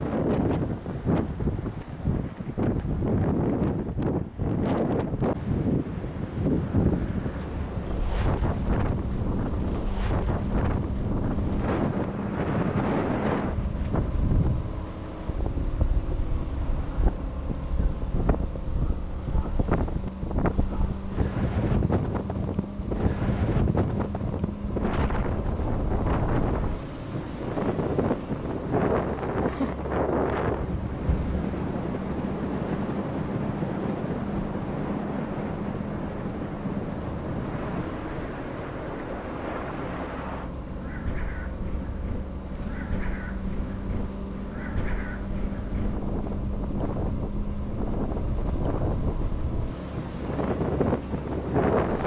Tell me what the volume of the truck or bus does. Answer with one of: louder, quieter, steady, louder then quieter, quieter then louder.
steady.